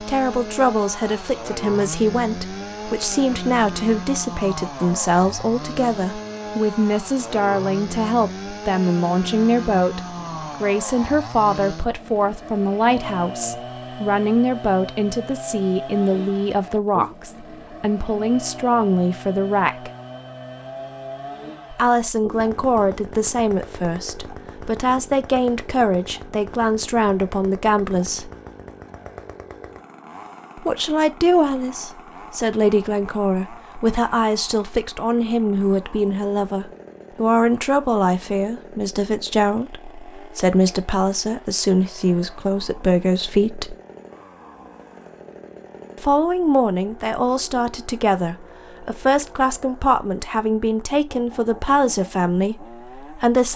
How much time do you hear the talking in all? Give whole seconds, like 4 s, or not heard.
47 s.